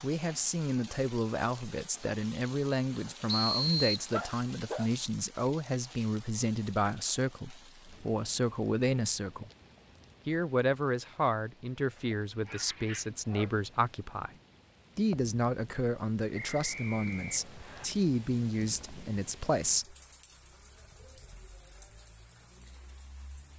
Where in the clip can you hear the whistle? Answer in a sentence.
The whistle can be heard from 3.2 to 4.1 s and from 16.4 to 17.9 s.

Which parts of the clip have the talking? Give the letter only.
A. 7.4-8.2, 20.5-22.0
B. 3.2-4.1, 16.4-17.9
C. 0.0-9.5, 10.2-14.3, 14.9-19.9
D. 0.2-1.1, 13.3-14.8
C.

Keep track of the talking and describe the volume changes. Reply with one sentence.
The volume of the talking stays about the same.